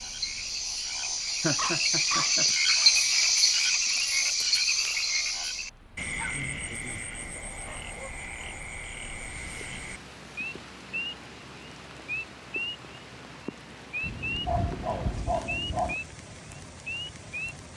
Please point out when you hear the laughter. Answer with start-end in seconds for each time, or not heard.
1.4-2.5.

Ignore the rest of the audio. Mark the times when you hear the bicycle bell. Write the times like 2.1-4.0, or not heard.
not heard.